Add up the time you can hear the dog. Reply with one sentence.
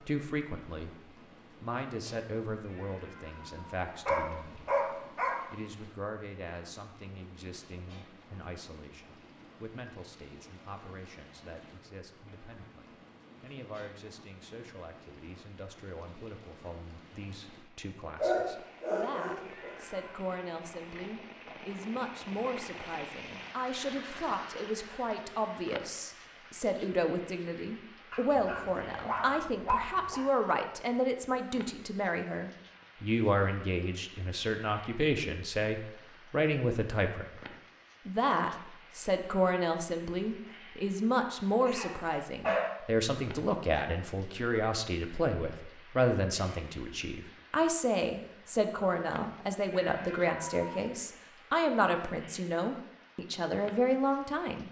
The dog can be heard for 6 seconds in total.